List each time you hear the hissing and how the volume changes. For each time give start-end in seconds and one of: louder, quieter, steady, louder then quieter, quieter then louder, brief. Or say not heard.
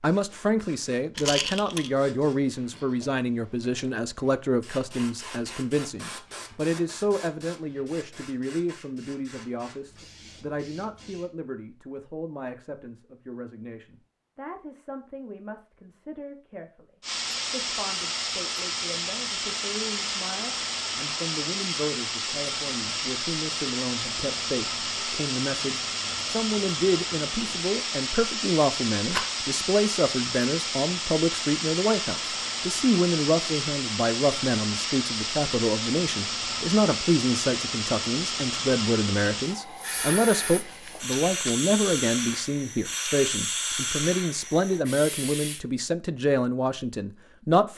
0.0-11.3 louder then quieter
17.0-45.6 steady.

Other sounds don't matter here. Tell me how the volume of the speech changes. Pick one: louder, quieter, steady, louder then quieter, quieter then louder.
quieter then louder.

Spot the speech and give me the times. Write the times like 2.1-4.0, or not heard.
0.0-47.7.